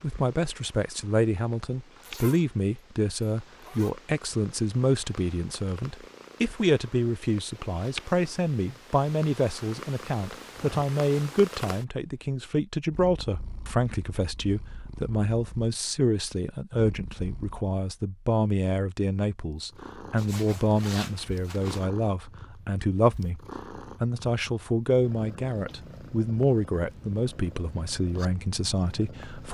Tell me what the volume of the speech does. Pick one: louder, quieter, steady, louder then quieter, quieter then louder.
steady.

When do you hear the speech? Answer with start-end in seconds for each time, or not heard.
0.0-23.4, 24.0-29.4.